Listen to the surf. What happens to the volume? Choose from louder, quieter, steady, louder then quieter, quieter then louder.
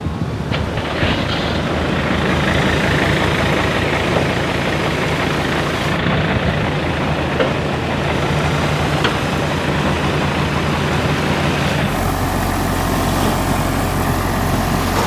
steady.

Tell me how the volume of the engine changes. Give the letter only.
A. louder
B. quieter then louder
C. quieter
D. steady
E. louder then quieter
D.